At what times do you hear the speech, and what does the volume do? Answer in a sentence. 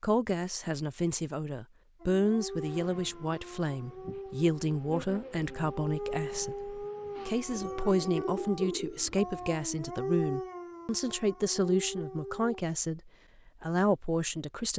The speech can be heard from 0.0 to 14.7 s, at a steady volume.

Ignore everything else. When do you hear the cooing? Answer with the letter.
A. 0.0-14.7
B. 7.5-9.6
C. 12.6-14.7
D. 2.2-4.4
B.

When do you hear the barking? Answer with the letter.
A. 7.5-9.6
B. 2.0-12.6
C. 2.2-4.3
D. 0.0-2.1
B.